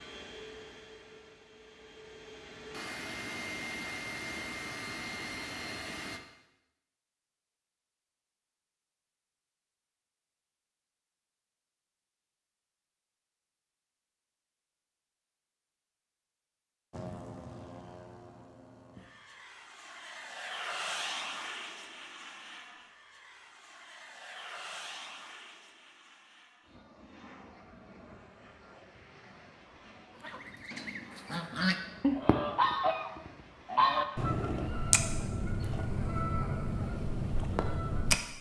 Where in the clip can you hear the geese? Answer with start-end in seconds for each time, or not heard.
30.2-38.1.